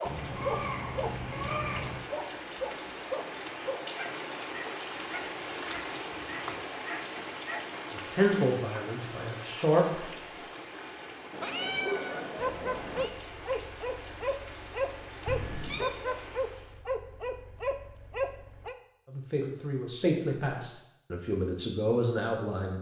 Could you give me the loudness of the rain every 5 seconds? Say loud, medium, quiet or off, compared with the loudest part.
loud, loud, medium, medium, off.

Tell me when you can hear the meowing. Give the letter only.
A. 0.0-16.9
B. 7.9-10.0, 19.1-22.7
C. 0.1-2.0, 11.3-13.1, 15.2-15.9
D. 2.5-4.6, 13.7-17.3
C.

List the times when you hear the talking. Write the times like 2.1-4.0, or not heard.
7.9-10.0, 19.1-22.7.